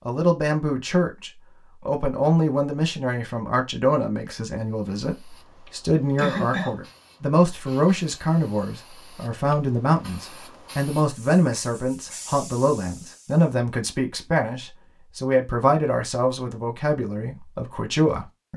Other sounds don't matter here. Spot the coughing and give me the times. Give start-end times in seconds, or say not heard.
6.2-6.8.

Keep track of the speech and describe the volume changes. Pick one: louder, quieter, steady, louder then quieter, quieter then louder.
steady.